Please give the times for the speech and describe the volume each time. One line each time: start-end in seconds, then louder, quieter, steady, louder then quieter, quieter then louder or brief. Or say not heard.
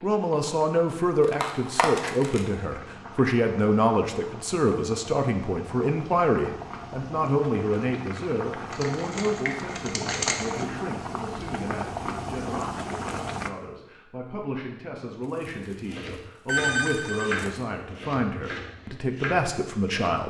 0.0-20.2 quieter then louder.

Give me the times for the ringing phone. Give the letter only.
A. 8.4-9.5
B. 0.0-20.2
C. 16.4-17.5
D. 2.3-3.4
C.